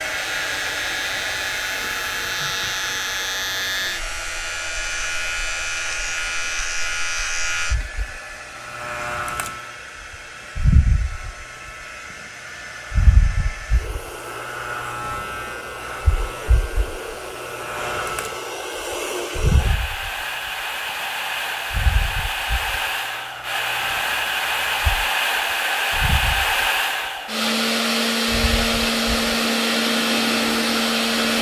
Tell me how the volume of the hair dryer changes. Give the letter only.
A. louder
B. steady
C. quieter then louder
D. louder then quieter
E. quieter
C.